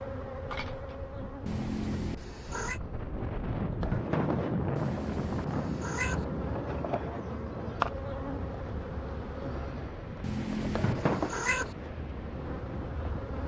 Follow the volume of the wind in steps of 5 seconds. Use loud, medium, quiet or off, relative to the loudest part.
loud, loud, medium.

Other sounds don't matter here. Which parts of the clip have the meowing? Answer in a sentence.
You can hear the meowing from 1.4 to 2.8 s, from 4.8 to 6.2 s and from 10.2 to 11.8 s.